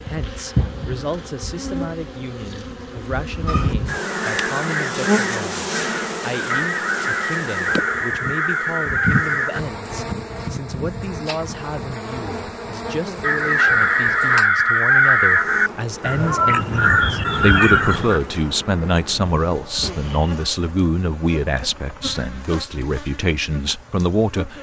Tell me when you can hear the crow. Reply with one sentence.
You can hear the crow from 3.5 to 9.6 s and from 13.2 to 18.2 s.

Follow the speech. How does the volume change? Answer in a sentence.
The volume of the speech goes up.